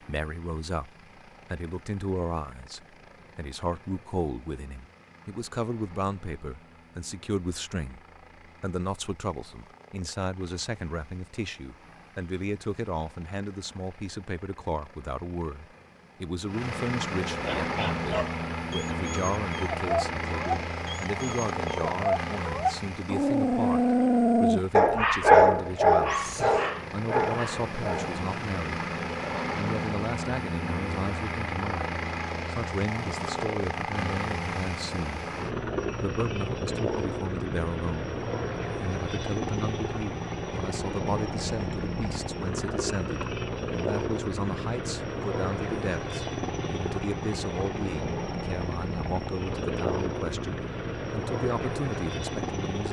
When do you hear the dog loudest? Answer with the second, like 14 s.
25 s.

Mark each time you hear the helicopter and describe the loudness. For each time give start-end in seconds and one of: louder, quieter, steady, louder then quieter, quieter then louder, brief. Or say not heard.
0.0-52.8 louder.